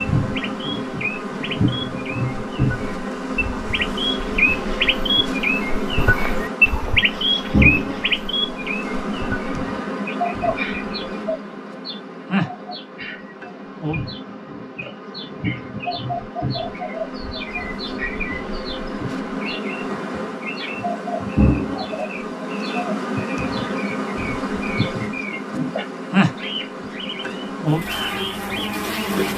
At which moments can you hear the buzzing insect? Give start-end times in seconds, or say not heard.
0.0-29.3.